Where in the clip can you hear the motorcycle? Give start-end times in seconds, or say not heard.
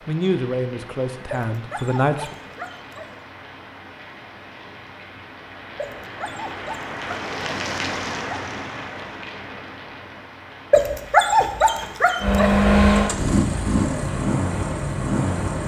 12.2-15.6.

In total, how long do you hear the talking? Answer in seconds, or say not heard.
2 s.